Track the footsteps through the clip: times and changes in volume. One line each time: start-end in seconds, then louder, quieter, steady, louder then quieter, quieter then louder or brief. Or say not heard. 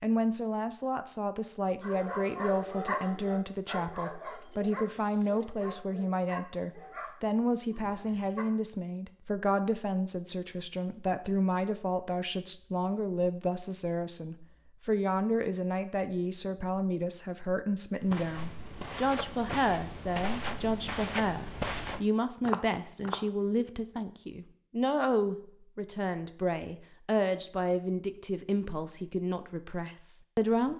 17.9-23.2 louder.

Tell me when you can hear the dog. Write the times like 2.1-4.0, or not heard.
1.8-8.4.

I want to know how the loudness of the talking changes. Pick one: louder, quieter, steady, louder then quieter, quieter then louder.
steady.